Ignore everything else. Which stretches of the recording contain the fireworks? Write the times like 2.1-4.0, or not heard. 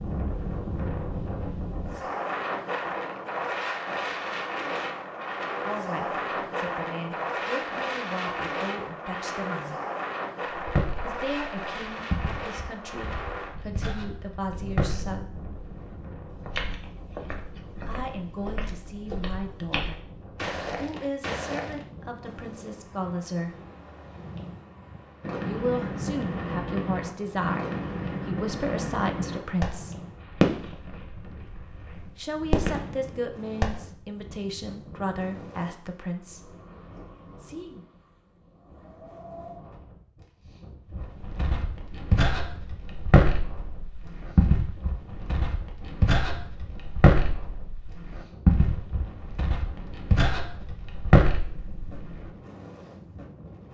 25.2-33.9.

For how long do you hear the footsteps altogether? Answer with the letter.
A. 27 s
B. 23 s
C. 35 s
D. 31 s
B.